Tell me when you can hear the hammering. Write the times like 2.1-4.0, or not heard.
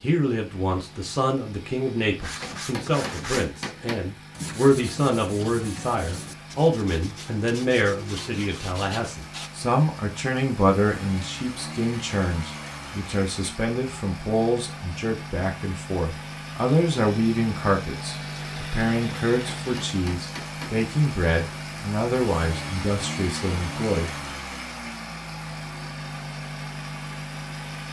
2.4-4.1, 19.2-20.9.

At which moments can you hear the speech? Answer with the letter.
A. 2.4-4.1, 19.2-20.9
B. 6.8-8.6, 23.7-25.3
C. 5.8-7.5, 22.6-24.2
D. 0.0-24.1
D.